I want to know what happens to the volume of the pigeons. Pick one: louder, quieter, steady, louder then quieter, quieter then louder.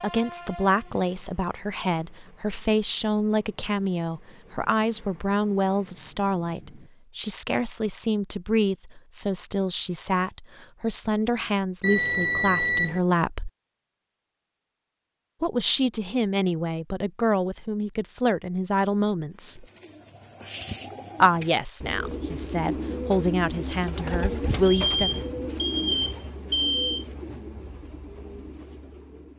louder then quieter.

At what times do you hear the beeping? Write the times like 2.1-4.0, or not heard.
11.8-13.0, 24.9-27.1.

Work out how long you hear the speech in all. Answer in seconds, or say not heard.
22 s.